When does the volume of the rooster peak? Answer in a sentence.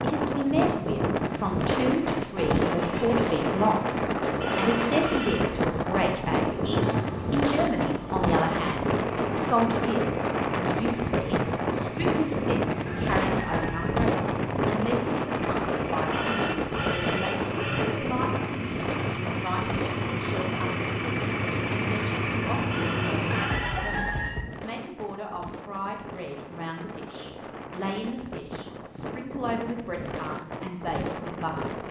The loudest moment of the rooster is at 24 seconds.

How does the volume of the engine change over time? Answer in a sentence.
The volume of the engine goes up.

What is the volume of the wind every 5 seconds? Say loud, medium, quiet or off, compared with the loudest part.
loud, loud, loud, loud, medium, quiet, medium.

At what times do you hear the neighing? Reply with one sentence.
You can hear the neighing from 4.4 to 5.5 s, from 16.1 to 18.1 s and from 22.7 to 23.9 s.